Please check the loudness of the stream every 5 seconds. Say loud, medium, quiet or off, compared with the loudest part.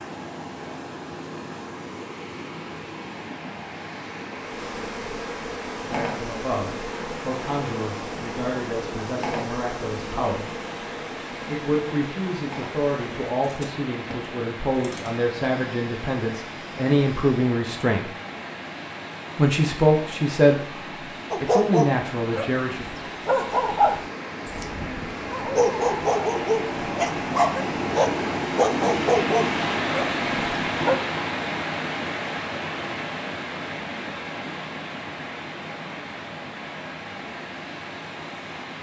medium, medium, medium, medium, medium, loud, loud, medium.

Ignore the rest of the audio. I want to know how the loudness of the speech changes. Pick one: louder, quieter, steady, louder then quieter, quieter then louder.
louder.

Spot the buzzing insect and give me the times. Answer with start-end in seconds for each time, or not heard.
4.3-17.5.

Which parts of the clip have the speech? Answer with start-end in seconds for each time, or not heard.
5.8-10.5, 11.4-18.1, 19.4-23.1.